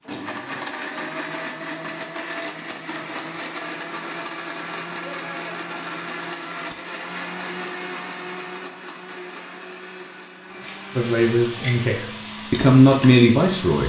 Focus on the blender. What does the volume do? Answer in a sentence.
The loudness of the blender goes down.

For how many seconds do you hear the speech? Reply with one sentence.
You can hear the speech for 3 seconds altogether.